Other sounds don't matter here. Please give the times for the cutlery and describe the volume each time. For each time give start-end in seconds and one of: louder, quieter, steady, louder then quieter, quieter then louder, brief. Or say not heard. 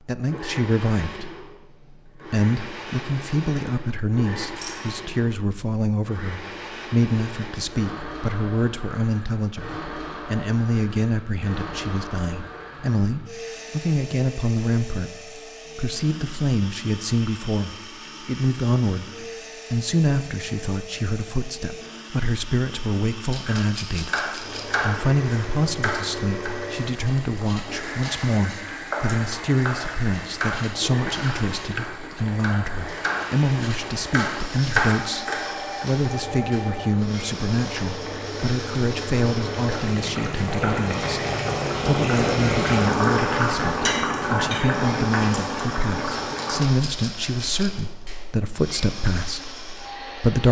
not heard.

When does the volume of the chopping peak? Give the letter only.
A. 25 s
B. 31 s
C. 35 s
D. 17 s
C.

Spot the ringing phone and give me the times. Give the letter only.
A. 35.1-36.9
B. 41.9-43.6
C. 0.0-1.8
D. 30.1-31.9
A.